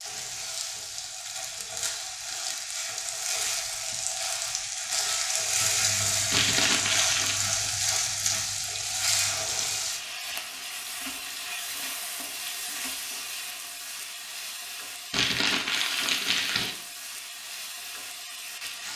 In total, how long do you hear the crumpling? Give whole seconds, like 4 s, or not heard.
3 s.